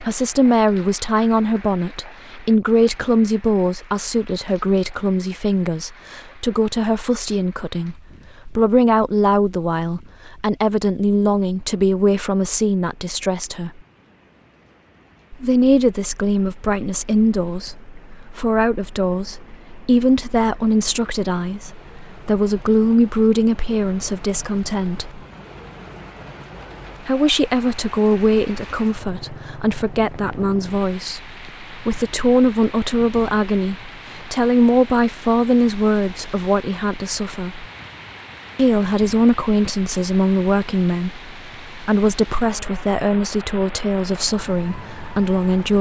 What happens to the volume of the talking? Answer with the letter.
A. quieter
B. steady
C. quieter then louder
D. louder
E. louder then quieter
B.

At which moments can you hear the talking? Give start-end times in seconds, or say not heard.
0.0-13.8, 15.3-25.2, 27.0-37.6, 38.5-45.7.